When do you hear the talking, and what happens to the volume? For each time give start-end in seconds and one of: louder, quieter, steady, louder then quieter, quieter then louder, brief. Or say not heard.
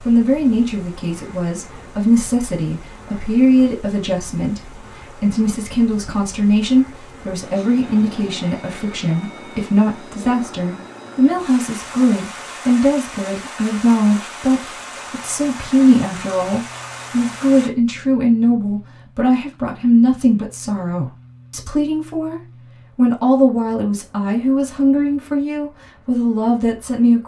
0.1-27.2 steady.